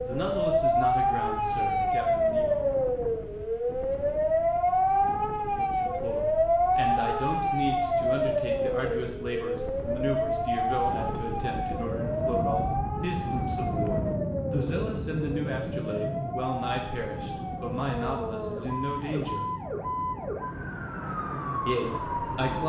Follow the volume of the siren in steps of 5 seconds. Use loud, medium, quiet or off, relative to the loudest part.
loud, loud, medium, medium, medium.